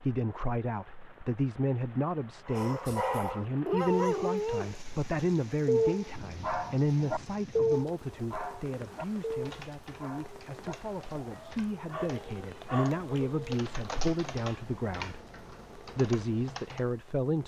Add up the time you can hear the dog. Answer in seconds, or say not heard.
10 s.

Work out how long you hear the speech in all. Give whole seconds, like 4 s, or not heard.
17 s.